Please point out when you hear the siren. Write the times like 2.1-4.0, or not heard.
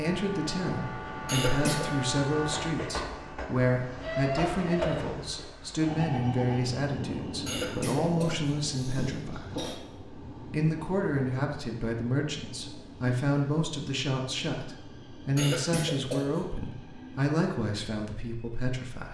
not heard.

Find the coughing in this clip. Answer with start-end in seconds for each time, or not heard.
1.2-1.9, 7.5-9.8, 15.3-16.4.